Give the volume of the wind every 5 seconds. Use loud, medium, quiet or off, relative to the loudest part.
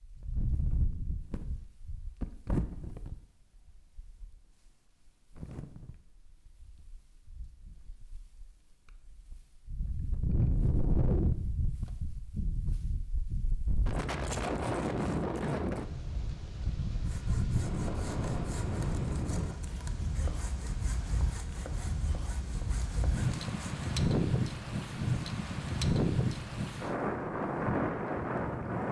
medium, quiet, loud, loud, loud, loud.